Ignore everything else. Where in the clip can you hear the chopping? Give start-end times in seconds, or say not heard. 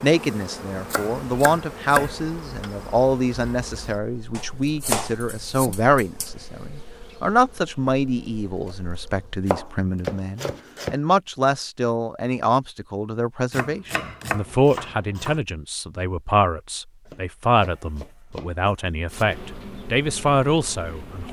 0.9-2.2, 4.3-6.3, 9.4-10.9, 13.5-15.4, 17.1-18.6.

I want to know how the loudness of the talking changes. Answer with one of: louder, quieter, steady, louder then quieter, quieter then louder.
steady.